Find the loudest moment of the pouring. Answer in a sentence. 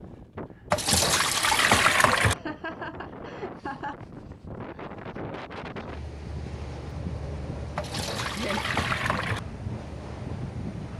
The volume of the pouring peaks at 2 seconds.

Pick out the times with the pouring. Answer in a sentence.
You can hear the pouring from 0.7 to 2.4 s and from 7.8 to 9.4 s.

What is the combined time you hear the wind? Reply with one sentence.
The wind can be heard for 11 seconds in total.